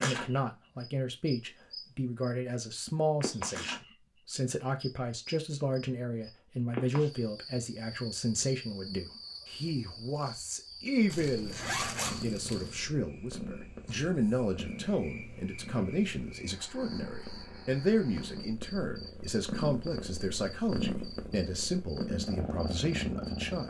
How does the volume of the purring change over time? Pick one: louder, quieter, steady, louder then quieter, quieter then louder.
louder.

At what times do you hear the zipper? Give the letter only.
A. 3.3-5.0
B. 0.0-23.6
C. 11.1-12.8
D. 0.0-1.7
C.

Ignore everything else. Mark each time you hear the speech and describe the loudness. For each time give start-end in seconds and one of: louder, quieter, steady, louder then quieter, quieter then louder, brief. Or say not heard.
0.0-23.6 steady.